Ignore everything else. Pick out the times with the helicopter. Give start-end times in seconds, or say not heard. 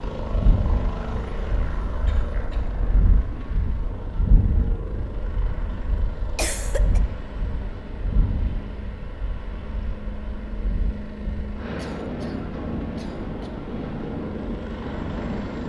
0.0-15.6.